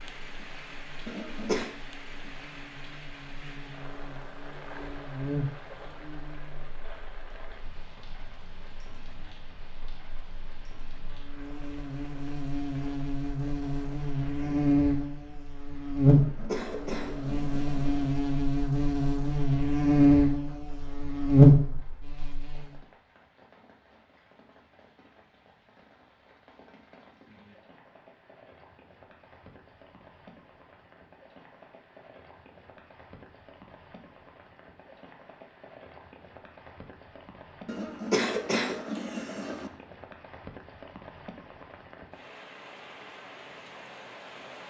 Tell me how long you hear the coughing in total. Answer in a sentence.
You can hear the coughing for 5 seconds altogether.